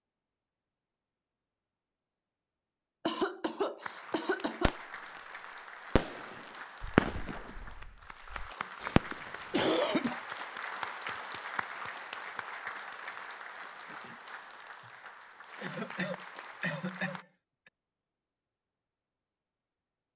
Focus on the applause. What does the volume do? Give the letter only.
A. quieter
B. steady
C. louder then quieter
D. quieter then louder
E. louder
C.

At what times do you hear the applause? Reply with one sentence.
You can hear the applause from 3.8 to 17.2 s.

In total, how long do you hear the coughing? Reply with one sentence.
The coughing can be heard for 5 seconds in total.